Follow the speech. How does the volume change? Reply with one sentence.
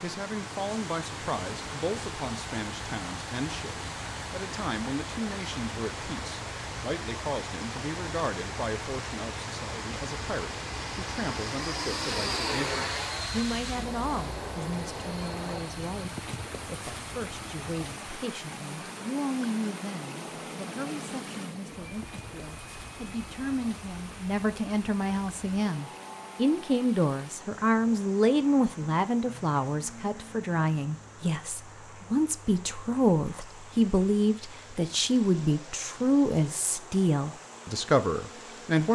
The volume of the speech goes up.